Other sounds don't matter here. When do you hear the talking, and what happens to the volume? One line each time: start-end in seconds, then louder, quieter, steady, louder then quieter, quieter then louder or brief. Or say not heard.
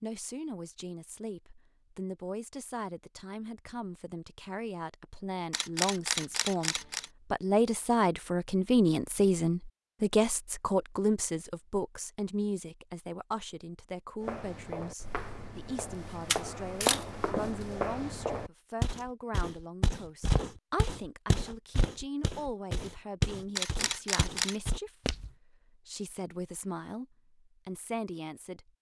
0.0-28.7 louder then quieter.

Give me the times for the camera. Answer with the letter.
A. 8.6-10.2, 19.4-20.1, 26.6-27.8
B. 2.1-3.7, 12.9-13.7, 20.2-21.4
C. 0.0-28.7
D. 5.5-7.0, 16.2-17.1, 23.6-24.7
D.